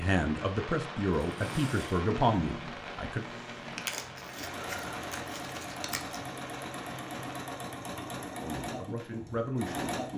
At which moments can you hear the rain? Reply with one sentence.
You can hear the rain from 0.0 to 7.5 s.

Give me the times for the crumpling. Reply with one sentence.
The crumpling can be heard from 3.8 to 6.3 s.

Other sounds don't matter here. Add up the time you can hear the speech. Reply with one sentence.
You can hear the speech for 5 seconds altogether.